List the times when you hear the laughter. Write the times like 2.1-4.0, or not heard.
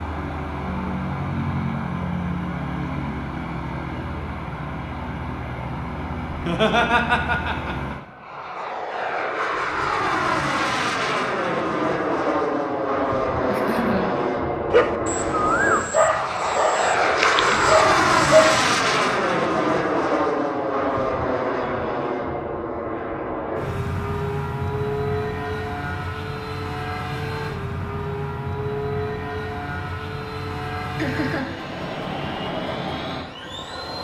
6.3-8.0, 13.4-14.2, 30.9-31.5.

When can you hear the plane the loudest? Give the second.
18 s.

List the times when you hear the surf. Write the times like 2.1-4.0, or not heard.
not heard.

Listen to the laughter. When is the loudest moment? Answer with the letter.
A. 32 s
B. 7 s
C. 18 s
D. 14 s
B.